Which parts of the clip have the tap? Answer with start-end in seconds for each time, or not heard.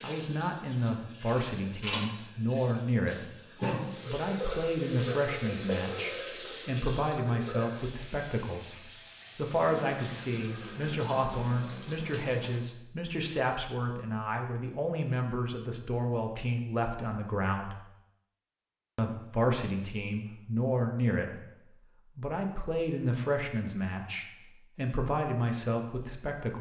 0.0-12.6.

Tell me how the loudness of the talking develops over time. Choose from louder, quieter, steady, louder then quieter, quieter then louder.
steady.